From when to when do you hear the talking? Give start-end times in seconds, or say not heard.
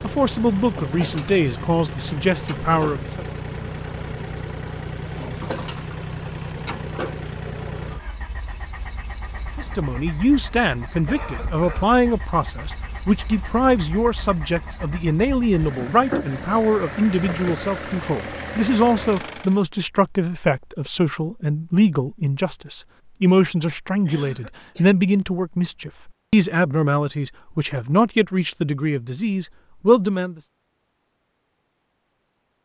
0.0-3.2, 9.6-30.4.